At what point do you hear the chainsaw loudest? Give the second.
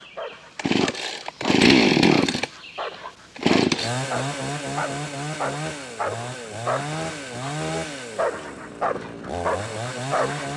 2 s.